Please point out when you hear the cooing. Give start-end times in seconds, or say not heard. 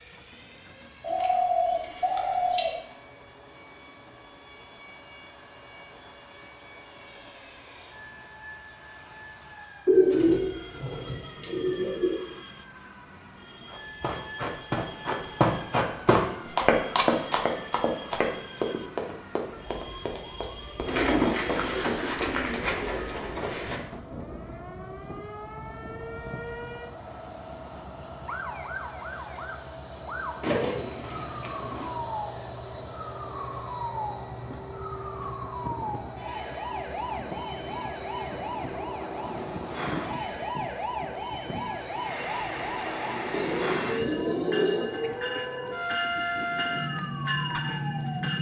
1.0-2.7, 9.8-12.2, 20.9-23.8, 30.4-31.9, 43.3-45.0.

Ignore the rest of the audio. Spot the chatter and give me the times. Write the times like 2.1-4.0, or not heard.
not heard.